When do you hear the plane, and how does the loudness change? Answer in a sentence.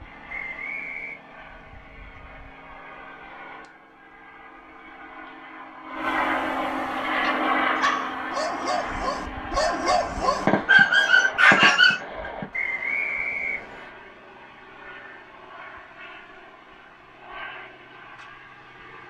You can hear the plane from 0.0 to 19.0 s, getting louder then quieter.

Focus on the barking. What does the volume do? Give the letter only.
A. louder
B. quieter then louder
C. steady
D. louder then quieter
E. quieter
A.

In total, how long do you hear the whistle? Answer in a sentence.
You can hear the whistle for 2 seconds altogether.